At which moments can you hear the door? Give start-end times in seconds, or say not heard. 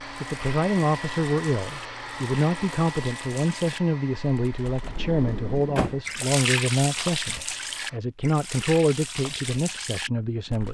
4.8-6.0.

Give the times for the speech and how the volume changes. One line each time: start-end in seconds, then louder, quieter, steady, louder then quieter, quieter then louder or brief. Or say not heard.
0.2-10.6 steady.